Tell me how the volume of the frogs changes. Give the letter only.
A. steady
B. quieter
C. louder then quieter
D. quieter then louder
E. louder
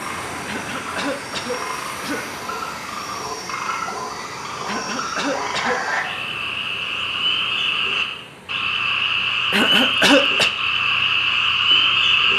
E.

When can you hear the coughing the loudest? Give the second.
10 s.